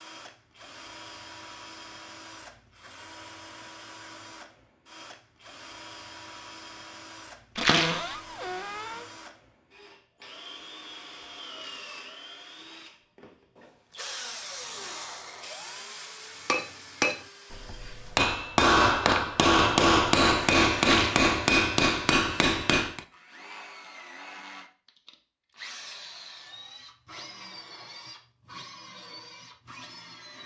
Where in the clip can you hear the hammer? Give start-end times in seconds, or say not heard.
16.4-23.1.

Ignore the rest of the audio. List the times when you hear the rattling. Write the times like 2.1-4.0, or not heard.
7.5-8.1, 20.8-21.2.